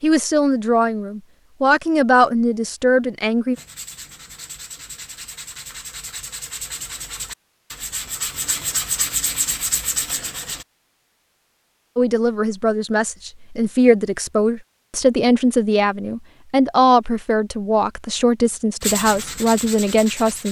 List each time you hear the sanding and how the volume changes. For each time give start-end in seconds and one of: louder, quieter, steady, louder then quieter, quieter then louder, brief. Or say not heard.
3.5-10.7 louder
18.8-20.4 brief.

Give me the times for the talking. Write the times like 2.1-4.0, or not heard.
0.0-3.5, 11.9-20.4.